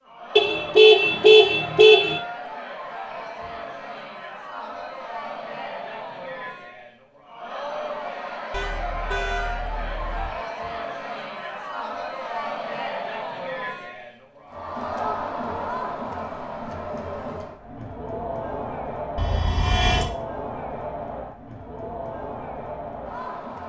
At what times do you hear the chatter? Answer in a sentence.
You can hear the chatter from 0.0 to 23.6 s.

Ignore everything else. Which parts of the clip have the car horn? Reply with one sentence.
The car horn can be heard from 0.3 to 2.2 s, from 8.5 to 10.3 s and from 19.1 to 20.1 s.